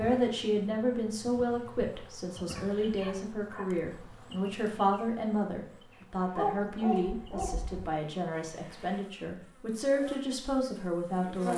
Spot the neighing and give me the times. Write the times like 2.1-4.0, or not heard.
not heard.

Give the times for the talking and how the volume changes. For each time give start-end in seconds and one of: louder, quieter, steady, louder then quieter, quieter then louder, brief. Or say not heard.
0.0-11.5 steady.